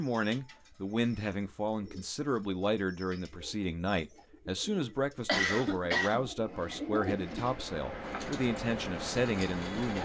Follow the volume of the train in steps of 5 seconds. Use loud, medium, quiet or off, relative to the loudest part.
off, loud.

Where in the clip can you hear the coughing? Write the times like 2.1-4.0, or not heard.
5.2-6.3.